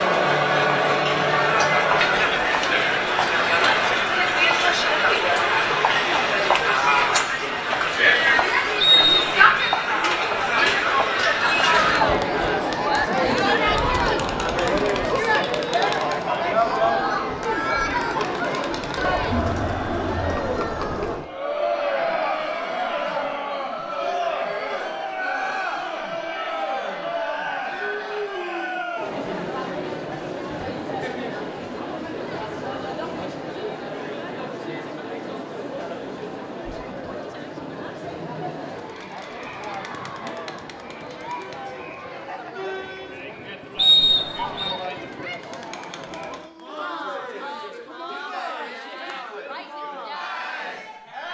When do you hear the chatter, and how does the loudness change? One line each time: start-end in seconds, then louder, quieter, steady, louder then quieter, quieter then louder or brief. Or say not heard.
0.0-51.2 quieter.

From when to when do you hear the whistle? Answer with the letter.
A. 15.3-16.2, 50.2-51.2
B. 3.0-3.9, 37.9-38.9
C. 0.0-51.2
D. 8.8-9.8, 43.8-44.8
D.